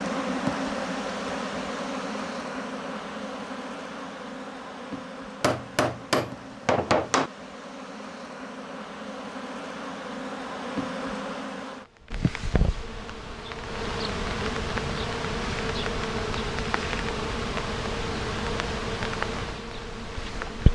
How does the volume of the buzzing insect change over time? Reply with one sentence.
The loudness of the buzzing insect goes down, then up.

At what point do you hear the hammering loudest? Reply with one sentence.
The loudest moment of the hammering is at 7 seconds.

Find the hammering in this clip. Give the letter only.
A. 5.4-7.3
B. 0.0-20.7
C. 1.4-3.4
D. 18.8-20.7
A.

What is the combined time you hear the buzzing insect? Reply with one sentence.
You can hear the buzzing insect for 21 seconds altogether.